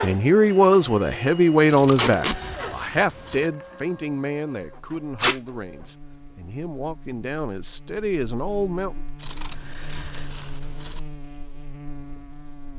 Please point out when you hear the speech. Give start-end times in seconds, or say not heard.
0.0-8.9.